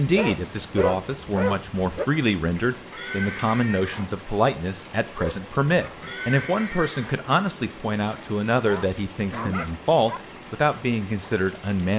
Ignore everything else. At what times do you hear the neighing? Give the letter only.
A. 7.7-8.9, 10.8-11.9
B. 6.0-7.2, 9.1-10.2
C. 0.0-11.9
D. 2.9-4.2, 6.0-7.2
D.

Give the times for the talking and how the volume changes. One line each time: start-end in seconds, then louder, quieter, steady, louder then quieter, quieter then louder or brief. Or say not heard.
0.0-11.9 steady.